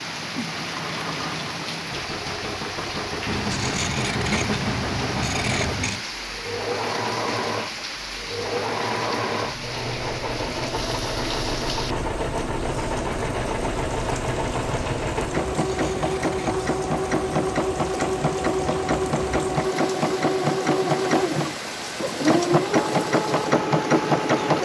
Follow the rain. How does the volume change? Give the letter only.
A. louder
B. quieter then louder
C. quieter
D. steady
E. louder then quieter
D.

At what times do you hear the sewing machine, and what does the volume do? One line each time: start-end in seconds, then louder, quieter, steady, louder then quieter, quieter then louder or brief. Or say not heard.
0.0-24.6 louder.